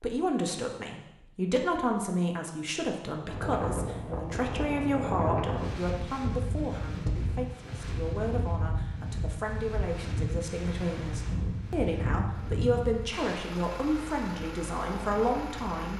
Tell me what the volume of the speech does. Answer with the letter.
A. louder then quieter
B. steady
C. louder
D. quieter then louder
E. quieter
D.